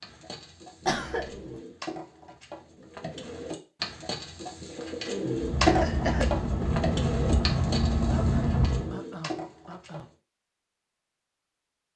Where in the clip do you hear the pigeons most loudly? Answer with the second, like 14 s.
6 s.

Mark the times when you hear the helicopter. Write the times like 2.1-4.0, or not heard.
5.3-8.9.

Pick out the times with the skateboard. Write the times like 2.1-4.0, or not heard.
not heard.